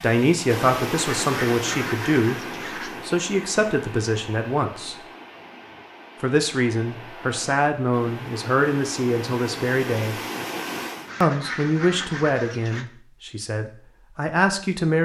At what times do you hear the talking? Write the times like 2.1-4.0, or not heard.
0.0-5.0, 6.2-10.2, 11.2-15.0.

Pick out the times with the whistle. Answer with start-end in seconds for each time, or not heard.
not heard.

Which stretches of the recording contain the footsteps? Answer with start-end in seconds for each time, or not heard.
not heard.